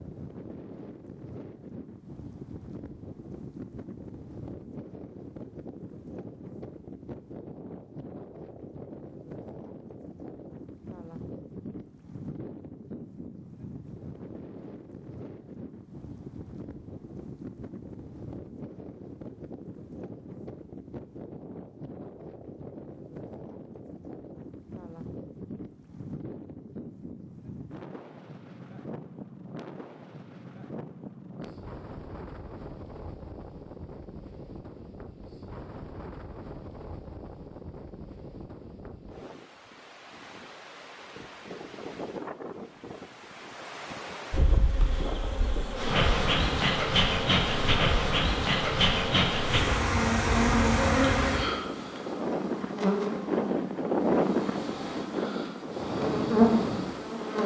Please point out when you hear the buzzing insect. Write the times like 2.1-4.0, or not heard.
44.3-57.4.